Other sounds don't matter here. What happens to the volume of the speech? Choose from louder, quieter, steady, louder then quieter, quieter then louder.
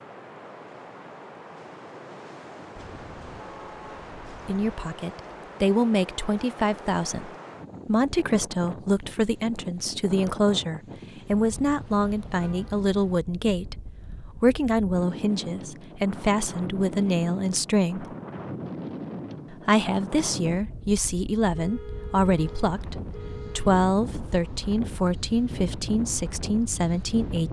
steady.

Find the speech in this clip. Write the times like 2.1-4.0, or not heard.
4.5-13.8, 14.4-18.1, 19.5-27.4.